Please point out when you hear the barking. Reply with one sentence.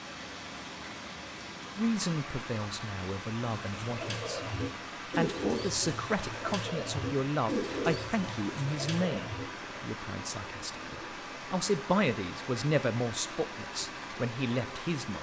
The barking can't be heard in this clip.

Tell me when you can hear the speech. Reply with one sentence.
The speech can be heard from 1.8 to 4.4 s and from 5.2 to 15.1 s.